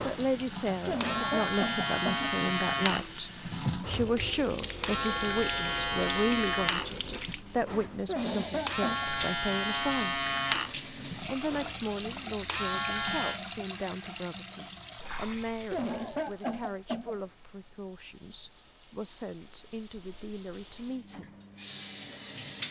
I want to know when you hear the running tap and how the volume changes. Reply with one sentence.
The running tap can be heard from 0.0 to 22.6 s, getting quieter.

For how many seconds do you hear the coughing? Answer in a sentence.
You can hear the coughing for 4 seconds altogether.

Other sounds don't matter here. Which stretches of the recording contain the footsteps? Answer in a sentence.
The footsteps can't be heard in this clip.